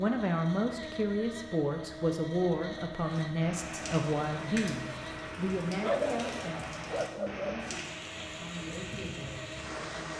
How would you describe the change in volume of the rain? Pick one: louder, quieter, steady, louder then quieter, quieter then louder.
steady.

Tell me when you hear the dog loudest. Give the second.
6 s.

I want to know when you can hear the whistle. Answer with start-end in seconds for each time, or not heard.
not heard.